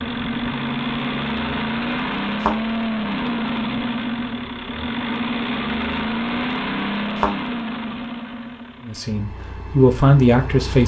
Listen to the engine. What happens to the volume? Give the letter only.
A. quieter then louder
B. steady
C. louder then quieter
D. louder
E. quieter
E.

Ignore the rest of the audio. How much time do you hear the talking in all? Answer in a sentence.
You can hear the talking for 2 seconds altogether.